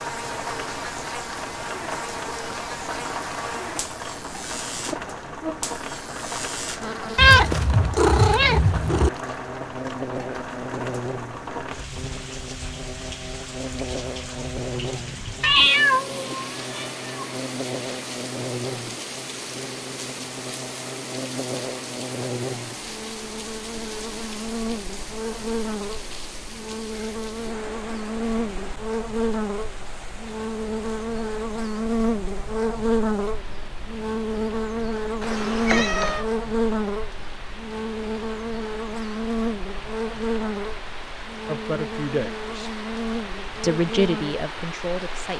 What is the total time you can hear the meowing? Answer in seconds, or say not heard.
5 s.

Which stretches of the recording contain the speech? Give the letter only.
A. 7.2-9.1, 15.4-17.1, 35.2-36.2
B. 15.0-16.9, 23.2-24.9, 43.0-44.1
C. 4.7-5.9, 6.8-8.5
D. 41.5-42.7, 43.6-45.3
D.